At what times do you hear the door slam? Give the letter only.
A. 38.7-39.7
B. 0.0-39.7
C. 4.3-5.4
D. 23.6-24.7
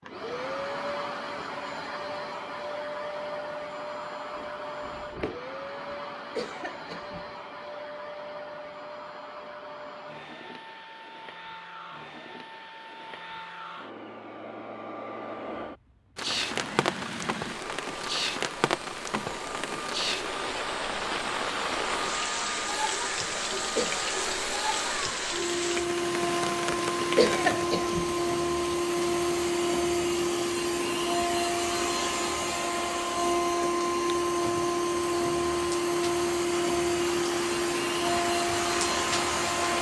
C.